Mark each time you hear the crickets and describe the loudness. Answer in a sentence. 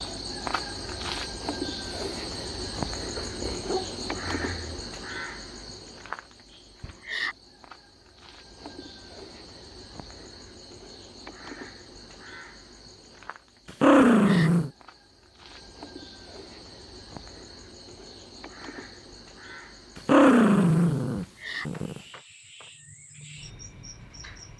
The crickets can be heard from 0.0 to 24.5 s, getting quieter.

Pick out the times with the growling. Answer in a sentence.
You can hear the growling from 3.1 to 4.8 s, from 13.8 to 14.7 s and from 19.9 to 22.0 s.